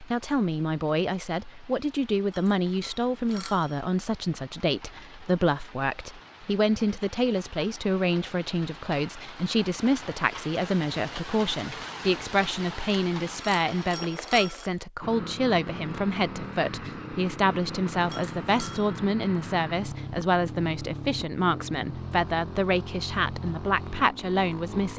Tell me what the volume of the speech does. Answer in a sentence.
The volume of the speech stays about the same.